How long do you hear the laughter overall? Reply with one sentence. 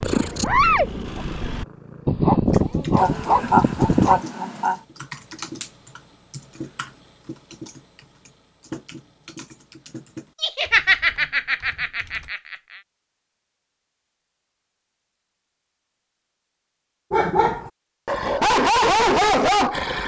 The laughter can be heard for 4 seconds in total.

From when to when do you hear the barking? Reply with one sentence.
You can hear the barking from 0.0 to 4.2 s and from 17.1 to 20.0 s.